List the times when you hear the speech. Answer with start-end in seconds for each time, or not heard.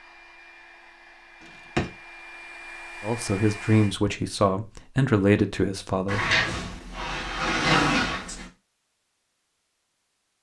3.0-6.2.